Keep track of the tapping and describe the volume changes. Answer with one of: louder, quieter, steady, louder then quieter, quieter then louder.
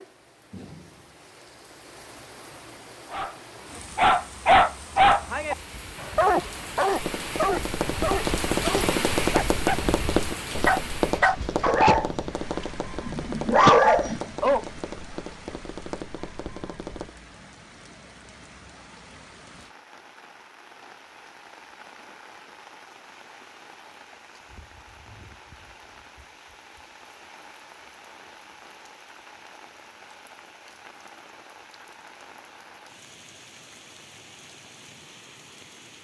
quieter.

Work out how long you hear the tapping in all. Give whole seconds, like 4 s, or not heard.
10 s.